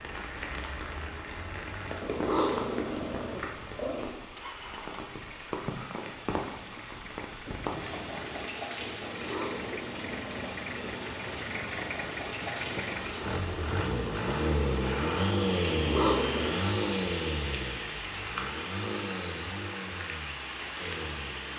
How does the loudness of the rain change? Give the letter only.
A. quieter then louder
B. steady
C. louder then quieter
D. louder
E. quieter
B.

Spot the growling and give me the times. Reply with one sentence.
The growling can be heard from 2.0 to 4.2 s, from 9.1 to 10.5 s and from 15.7 to 16.7 s.